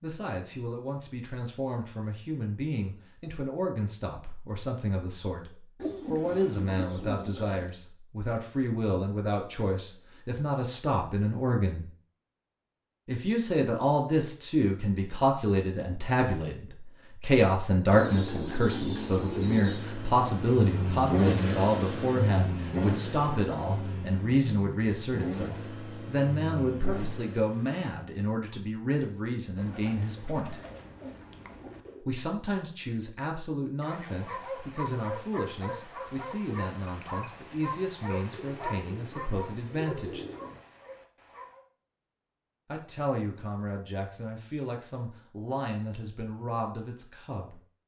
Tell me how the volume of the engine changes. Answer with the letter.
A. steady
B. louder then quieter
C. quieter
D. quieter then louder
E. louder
C.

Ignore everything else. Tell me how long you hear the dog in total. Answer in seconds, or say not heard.
8 s.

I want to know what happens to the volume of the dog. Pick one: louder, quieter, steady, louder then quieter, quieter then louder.
quieter.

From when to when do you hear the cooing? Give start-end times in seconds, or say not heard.
5.8-7.7, 17.9-19.9, 29.6-32.0, 38.3-40.6.